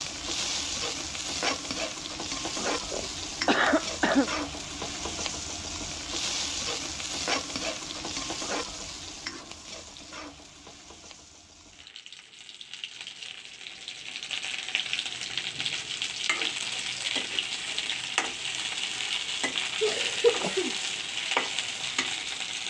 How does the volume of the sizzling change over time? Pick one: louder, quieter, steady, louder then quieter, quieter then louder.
quieter then louder.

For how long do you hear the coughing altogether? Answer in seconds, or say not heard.
3 s.